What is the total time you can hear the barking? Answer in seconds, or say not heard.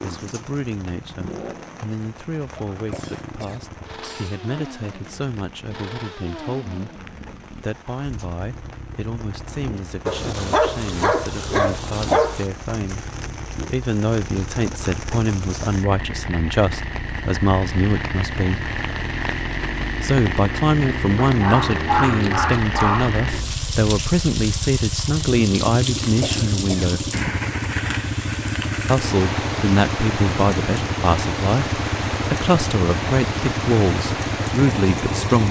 4 s.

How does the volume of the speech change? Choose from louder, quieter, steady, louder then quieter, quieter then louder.
louder.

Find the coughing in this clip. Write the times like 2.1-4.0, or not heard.
2.9-4.5, 26.1-26.9.